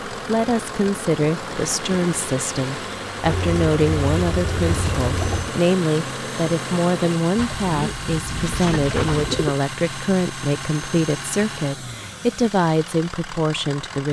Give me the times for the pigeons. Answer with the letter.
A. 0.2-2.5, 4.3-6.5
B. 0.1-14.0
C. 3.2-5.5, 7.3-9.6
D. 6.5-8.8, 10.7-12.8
C.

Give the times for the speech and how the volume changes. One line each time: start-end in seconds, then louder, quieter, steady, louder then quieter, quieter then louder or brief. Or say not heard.
0.1-14.0 steady.